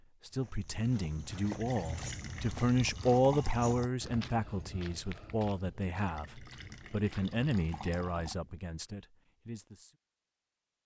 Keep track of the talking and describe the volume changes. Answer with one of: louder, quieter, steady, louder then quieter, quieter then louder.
louder then quieter.